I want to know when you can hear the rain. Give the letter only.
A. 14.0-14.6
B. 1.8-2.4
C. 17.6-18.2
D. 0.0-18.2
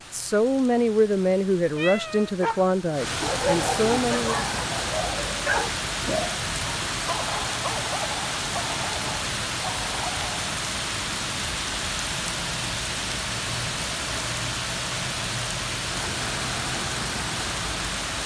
D.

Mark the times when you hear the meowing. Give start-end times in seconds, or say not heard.
1.8-2.4.